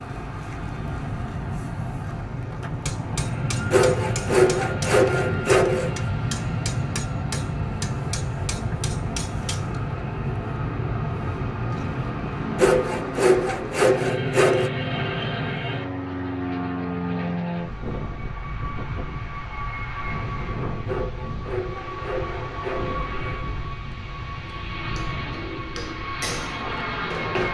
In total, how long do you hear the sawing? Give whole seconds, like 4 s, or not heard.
7 s.